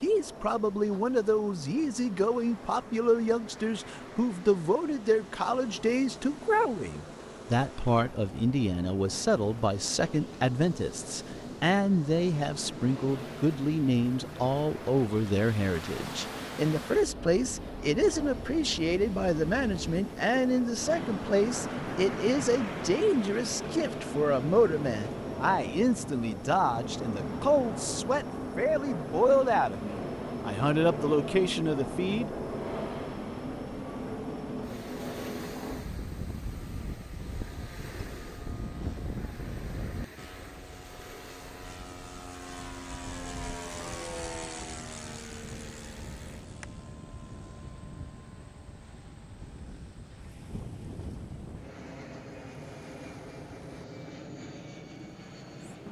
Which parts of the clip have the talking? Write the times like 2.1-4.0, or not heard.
0.0-32.3.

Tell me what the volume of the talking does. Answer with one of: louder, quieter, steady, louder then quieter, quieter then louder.
steady.